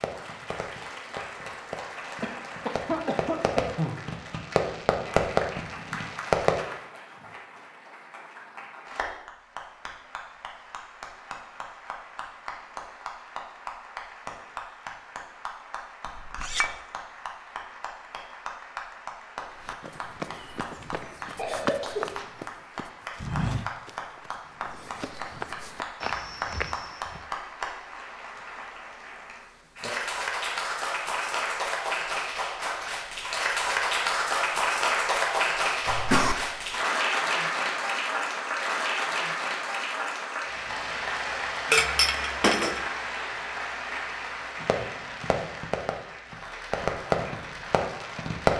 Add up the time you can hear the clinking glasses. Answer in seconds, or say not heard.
2 s.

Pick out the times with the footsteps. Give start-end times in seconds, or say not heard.
19.6-27.2.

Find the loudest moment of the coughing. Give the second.
36 s.